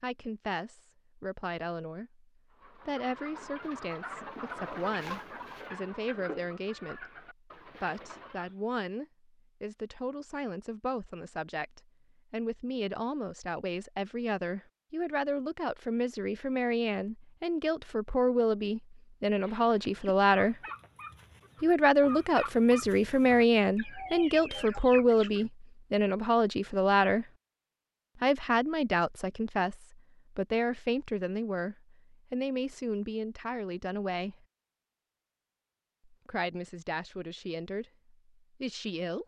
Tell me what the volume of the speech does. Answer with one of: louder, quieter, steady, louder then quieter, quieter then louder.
louder then quieter.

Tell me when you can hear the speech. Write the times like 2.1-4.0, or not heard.
0.0-20.6, 21.6-27.2, 28.2-34.5, 36.0-39.2.